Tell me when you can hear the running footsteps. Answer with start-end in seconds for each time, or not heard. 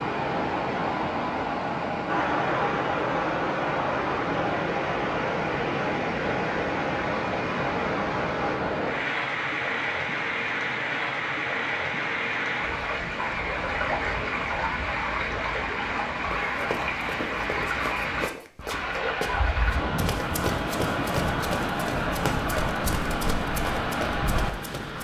16.3-25.0.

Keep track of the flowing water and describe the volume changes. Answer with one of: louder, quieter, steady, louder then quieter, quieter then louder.
steady.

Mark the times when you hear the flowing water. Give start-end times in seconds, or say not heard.
0.0-25.0.